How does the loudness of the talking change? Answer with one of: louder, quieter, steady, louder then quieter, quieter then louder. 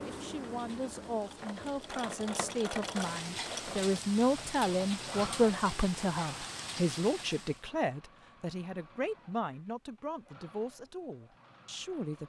louder then quieter.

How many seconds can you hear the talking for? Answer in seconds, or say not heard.
12 s.